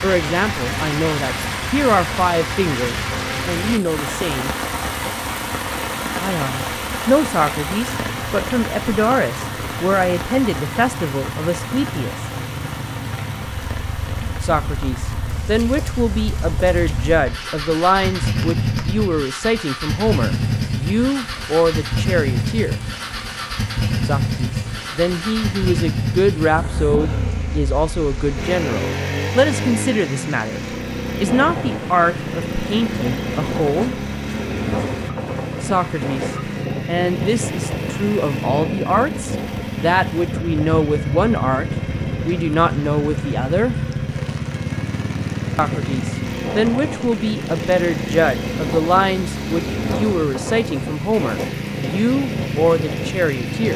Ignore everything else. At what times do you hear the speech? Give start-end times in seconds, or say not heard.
0.0-4.5, 6.2-12.2, 14.4-22.8, 24.1-34.0, 35.6-43.8, 45.5-53.7.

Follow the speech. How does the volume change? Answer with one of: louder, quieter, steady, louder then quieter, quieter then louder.
steady.